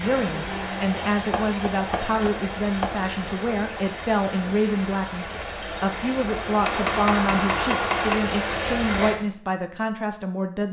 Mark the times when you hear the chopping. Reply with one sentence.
You can hear the chopping from 1.1 to 3.1 s and from 6.7 to 8.2 s.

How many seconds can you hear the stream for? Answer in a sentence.
You can hear the stream for 9 seconds altogether.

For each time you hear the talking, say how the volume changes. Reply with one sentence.
The talking can be heard from 0.0 to 10.6 s, at a steady volume.